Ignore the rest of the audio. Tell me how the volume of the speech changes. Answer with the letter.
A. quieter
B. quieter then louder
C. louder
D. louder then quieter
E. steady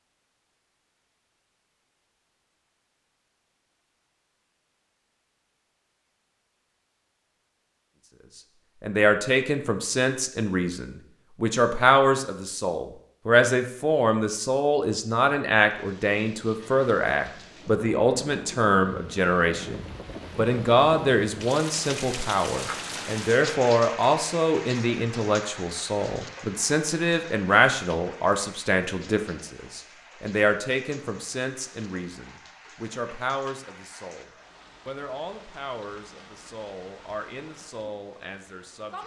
A.